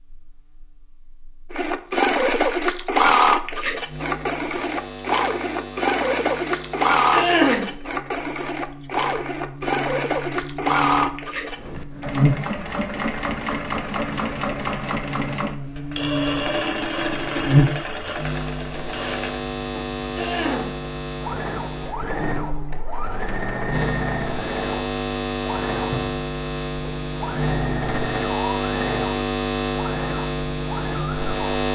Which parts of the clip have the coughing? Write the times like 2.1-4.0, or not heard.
7.1-7.7, 20.1-20.8.